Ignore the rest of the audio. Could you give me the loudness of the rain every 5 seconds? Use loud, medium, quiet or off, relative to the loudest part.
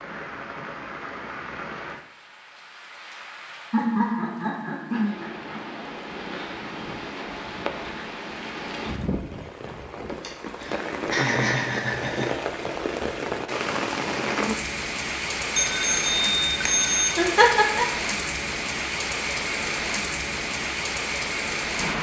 medium, medium, loud, loud, loud.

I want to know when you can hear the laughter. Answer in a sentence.
You can hear the laughter from 3.7 to 5.7 s, from 10.2 to 12.3 s and from 17.1 to 17.9 s.